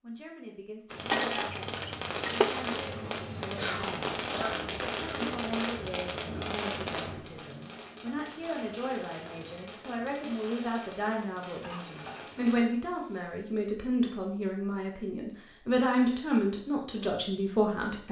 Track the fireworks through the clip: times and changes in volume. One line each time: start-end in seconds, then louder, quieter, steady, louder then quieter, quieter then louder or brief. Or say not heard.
0.9-12.6 quieter.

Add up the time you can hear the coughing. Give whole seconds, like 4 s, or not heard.
3 s.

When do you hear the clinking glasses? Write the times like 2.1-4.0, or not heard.
1.1-2.5.